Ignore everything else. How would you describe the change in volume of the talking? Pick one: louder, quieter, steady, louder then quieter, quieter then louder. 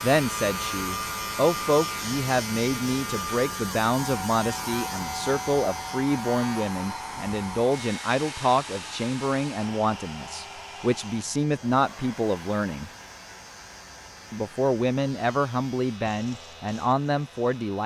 steady.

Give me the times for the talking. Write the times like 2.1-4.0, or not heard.
0.0-12.9, 14.3-17.8.